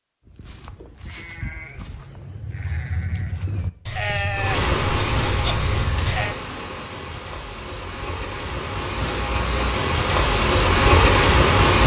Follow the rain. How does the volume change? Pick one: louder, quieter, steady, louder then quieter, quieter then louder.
quieter then louder.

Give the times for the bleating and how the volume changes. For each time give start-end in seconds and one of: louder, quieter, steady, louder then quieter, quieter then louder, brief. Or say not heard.
0.2-6.3 louder.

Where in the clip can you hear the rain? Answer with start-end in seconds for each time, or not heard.
4.3-11.8.